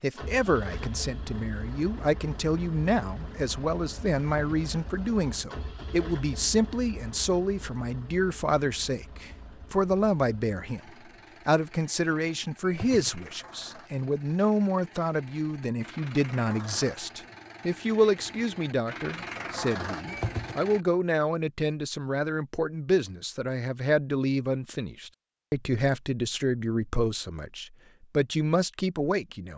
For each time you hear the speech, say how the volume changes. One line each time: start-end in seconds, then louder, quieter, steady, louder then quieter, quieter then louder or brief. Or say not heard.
0.0-29.5 steady.